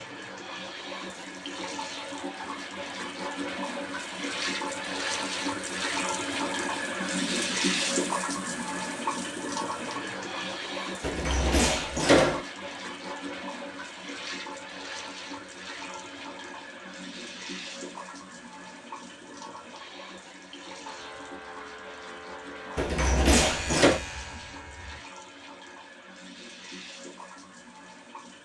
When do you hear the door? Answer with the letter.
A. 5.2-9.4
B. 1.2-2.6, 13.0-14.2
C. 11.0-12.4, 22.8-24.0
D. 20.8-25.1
C.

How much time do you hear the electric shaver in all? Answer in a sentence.
You can hear the electric shaver for 4 seconds altogether.